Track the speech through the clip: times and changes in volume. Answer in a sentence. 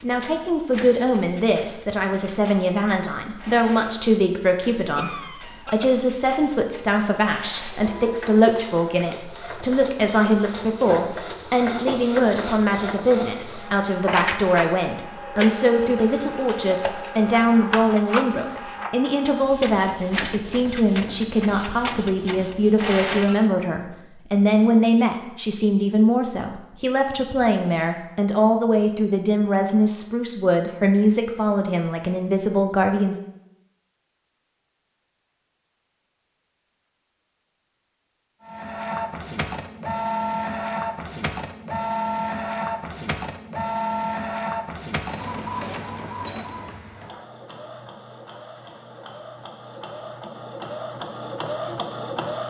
The speech can be heard from 0.0 to 33.1 s, at a steady volume.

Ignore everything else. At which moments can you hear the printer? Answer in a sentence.
The printer can be heard from 0.0 to 23.5 s and from 38.5 to 52.4 s.